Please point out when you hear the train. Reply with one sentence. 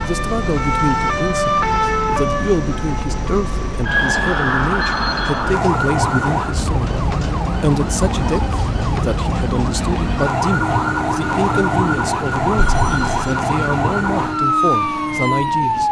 You can hear the train from 0.0 to 15.8 s.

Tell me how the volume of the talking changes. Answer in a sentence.
The volume of the talking stays about the same.